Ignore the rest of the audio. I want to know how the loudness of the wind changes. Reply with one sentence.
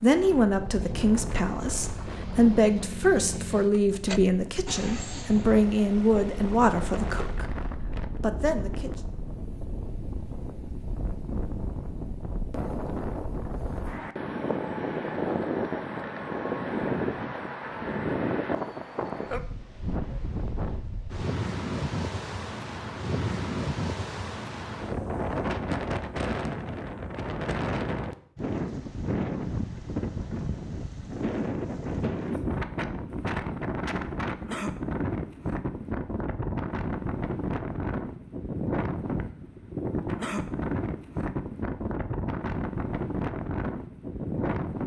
The volume of the wind goes up.